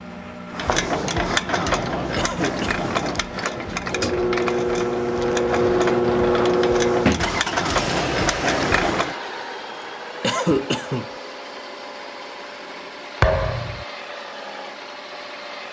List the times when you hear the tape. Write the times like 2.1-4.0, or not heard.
not heard.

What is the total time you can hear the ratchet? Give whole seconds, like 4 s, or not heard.
9 s.